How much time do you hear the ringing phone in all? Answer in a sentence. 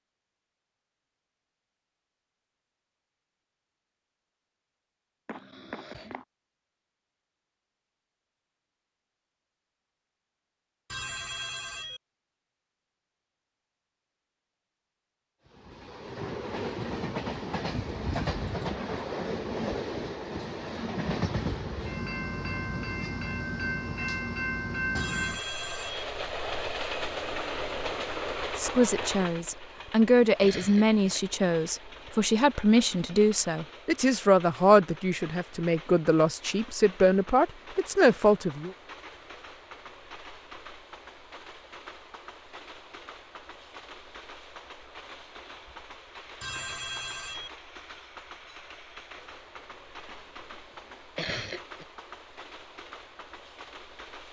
The ringing phone can be heard for 3 seconds in total.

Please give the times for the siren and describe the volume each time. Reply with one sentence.
You can't hear the siren here.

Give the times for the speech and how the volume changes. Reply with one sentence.
You can hear the speech from 28.6 to 38.7 s, at a steady volume.